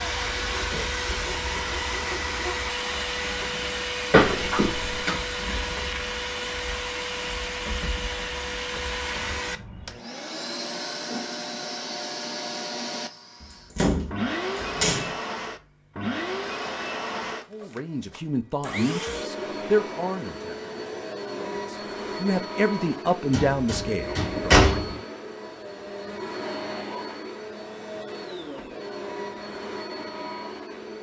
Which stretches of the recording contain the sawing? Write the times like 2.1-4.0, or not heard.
0.0-2.6.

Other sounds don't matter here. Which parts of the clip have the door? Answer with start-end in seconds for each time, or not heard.
4.1-5.1, 13.4-15.2, 23.3-24.9.